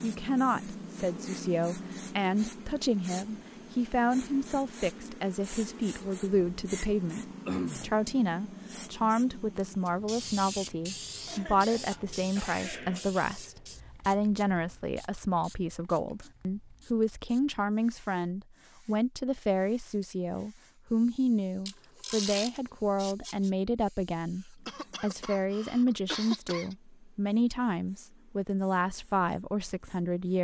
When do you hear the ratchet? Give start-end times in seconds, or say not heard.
21.6-23.5.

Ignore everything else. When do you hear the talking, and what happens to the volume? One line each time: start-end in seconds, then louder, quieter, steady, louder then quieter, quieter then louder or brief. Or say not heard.
0.0-30.3 steady.